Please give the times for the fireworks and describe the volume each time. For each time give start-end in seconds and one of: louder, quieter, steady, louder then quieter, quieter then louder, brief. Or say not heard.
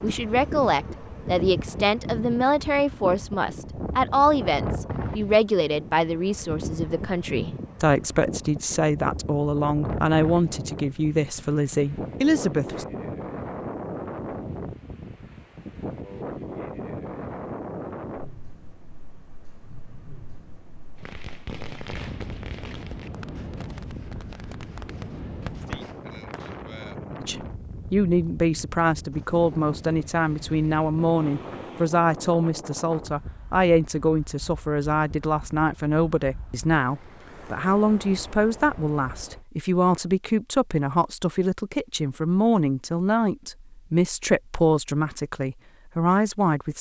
20.9-26.6 quieter then louder.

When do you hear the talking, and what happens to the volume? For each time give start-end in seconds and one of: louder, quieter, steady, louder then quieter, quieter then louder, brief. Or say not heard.
0.0-12.8 steady
27.2-46.7 steady.